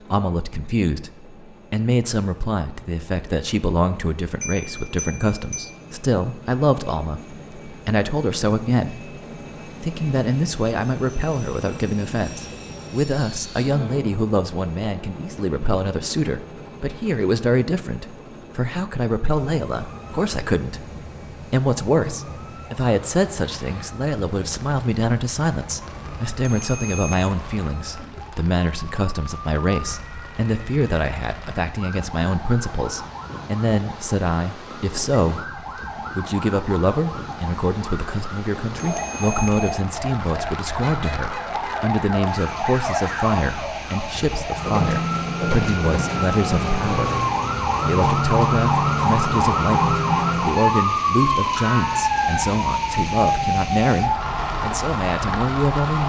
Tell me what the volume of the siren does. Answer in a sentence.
The loudness of the siren goes up.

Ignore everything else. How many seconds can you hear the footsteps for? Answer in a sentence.
You can't hear the footsteps here.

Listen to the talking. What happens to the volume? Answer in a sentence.
The volume of the talking stays about the same.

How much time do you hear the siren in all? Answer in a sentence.
The siren can be heard for 37 seconds in total.